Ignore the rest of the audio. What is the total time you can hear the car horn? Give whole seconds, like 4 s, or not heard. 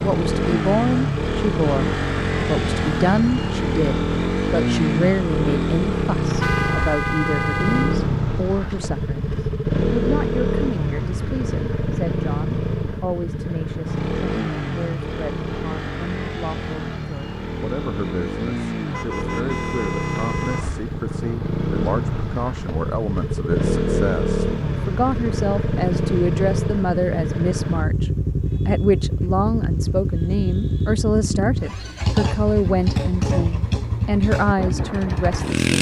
3 s.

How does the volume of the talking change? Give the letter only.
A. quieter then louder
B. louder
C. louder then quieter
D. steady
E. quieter
A.